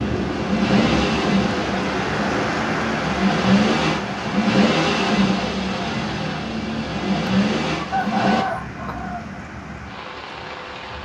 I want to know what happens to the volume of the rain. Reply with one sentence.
The loudness of the rain goes down.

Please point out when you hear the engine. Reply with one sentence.
The engine can be heard from 0.0 to 8.4 s.